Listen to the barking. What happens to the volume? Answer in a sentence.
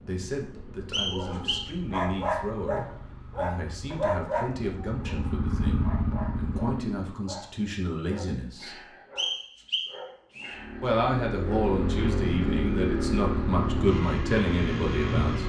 The volume of the barking goes down.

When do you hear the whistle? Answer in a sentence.
The whistle can be heard from 0.9 to 1.7 s and from 9.2 to 10.6 s.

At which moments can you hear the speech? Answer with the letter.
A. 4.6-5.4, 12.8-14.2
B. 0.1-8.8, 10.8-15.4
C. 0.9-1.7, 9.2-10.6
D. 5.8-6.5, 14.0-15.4
B.